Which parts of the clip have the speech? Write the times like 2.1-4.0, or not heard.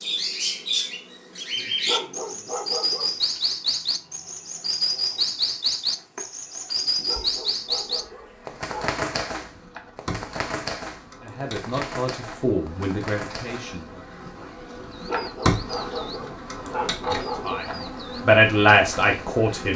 11.2-14.1, 17.4-19.7.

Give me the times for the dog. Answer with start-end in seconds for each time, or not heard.
1.6-3.1, 6.8-9.0, 14.8-17.7.